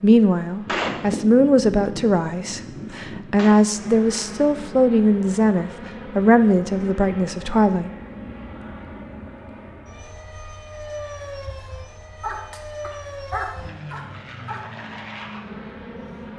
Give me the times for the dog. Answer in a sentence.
The dog can be heard from 12.2 to 14.6 s.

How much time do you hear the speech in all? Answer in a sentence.
The speech can be heard for 8 seconds in total.